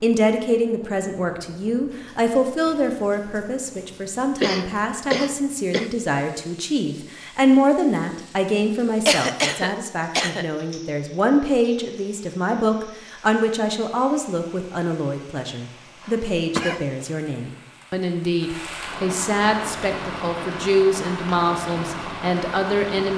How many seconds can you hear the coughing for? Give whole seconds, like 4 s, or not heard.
4 s.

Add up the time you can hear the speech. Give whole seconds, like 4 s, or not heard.
23 s.